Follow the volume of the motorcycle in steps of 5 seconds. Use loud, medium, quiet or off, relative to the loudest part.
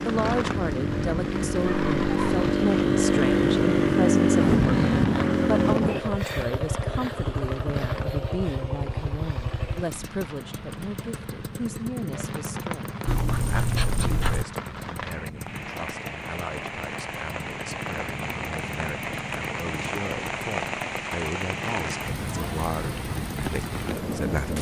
loud, medium, quiet, quiet, quiet.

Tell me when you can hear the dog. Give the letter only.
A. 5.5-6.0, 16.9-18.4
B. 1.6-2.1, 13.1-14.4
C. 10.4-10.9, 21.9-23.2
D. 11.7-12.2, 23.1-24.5
B.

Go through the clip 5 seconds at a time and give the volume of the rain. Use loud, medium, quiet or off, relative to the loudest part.
medium, medium, medium, loud, loud.